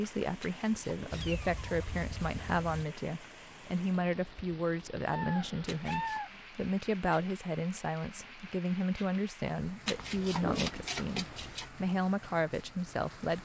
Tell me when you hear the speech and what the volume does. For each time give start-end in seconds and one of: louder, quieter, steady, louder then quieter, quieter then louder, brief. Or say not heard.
0.0-13.4 steady.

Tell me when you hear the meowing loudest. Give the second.
6 s.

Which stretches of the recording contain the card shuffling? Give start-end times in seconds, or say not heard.
0.4-1.4, 5.7-6.2, 9.8-11.7.